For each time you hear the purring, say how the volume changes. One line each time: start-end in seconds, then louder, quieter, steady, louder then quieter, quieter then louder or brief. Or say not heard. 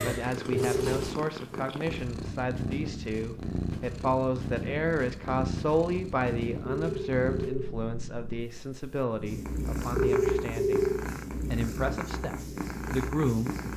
0.0-13.7 steady.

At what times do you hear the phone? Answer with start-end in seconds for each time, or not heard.
0.5-1.0, 6.7-7.7, 9.9-11.0.